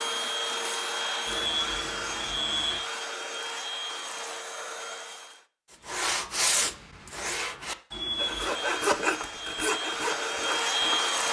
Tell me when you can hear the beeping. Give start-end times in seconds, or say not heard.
1.2-2.8, 7.9-8.5.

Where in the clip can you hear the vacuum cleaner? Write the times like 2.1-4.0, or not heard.
0.0-5.5, 8.1-11.2.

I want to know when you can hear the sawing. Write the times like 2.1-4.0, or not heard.
5.8-11.2.